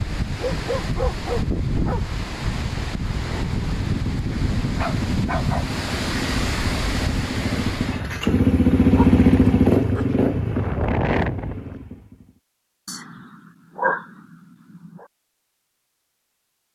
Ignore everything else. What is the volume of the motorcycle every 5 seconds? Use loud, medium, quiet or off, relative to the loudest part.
quiet, loud, medium, off.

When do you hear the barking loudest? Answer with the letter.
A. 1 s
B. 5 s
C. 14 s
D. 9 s
C.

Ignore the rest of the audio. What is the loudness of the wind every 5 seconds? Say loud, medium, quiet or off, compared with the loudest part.
loud, loud, loud, off.